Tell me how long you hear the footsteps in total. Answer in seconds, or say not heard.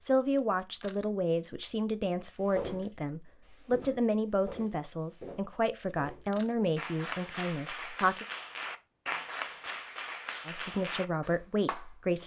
3 s.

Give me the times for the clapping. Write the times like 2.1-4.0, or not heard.
6.8-11.9.